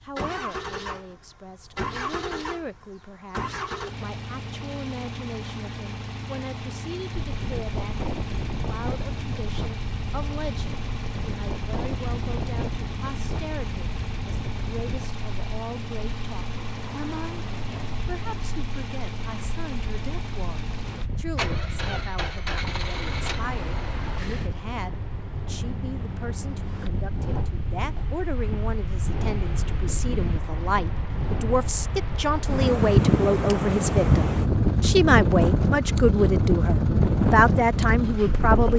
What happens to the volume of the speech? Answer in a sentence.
The volume of the speech goes up.